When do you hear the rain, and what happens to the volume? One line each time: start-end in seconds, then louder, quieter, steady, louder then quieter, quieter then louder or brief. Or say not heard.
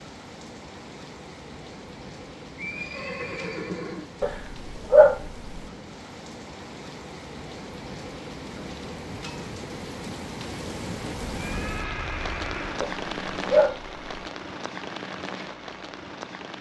0.0-16.5 louder.